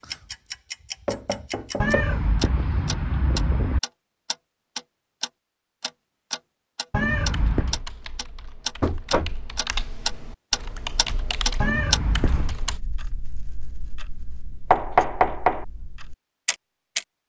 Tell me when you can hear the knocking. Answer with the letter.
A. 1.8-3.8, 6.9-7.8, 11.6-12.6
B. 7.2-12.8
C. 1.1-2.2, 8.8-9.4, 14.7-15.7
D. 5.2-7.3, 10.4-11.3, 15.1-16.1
C.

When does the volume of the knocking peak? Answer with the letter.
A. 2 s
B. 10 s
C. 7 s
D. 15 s
D.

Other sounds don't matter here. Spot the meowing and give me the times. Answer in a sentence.
You can hear the meowing from 1.8 to 3.8 s, from 6.9 to 7.8 s and from 11.6 to 12.6 s.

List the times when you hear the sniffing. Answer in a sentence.
The sniffing can't be heard in this clip.